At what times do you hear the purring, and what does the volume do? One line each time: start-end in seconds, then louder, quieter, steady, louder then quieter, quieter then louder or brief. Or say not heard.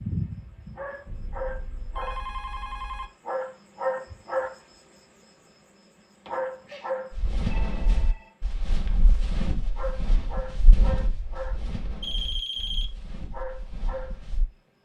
not heard.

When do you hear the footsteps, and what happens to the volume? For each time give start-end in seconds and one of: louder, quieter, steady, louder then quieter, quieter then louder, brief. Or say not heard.
7.1-14.4 quieter.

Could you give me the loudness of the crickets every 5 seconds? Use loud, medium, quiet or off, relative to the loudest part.
loud, loud, medium.